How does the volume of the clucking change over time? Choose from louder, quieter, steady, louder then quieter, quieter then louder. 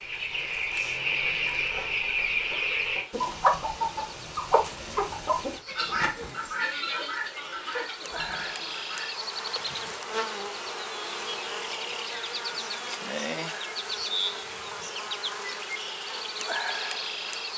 quieter.